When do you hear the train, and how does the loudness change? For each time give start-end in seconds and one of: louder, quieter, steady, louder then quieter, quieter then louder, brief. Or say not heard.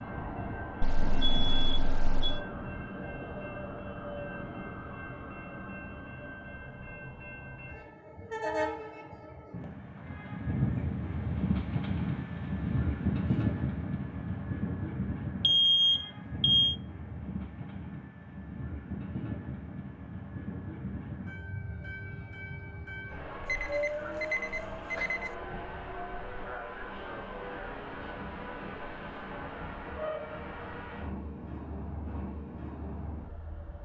0.0-33.7 louder then quieter.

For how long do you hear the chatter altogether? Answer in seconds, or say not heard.
not heard.